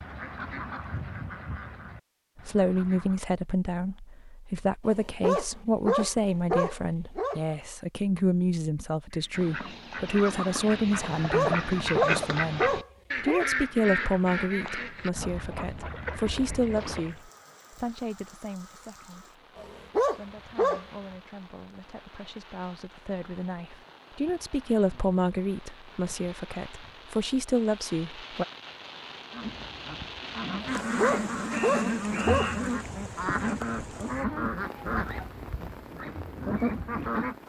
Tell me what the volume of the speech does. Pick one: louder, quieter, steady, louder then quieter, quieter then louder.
quieter then louder.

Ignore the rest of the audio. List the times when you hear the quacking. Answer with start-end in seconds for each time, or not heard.
0.0-3.2, 9.1-17.2, 29.3-37.4.